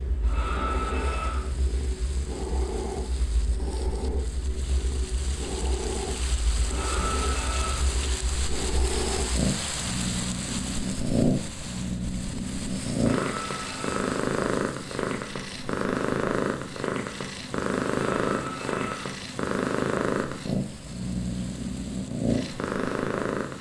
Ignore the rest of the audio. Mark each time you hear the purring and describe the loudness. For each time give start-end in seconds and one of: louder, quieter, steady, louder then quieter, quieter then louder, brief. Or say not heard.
0.0-23.5 louder.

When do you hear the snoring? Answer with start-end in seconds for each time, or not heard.
0.2-1.5, 6.6-7.9, 13.1-14.1, 18.1-19.1.